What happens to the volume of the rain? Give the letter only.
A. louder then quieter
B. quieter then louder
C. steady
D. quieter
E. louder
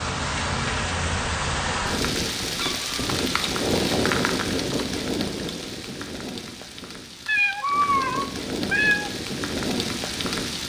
B.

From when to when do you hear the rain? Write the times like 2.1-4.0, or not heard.
0.0-10.6.